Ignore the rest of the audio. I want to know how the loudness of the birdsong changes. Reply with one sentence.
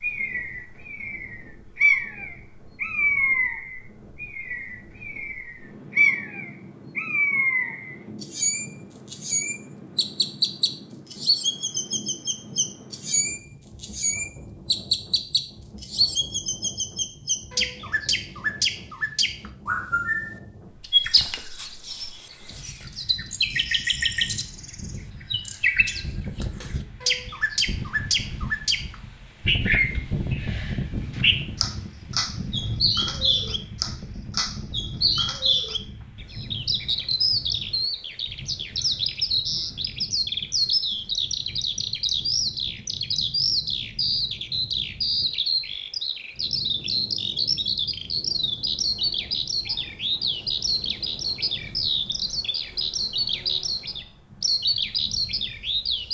The loudness of the birdsong stays about the same.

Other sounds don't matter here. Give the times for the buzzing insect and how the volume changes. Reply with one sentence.
You can't hear the buzzing insect here.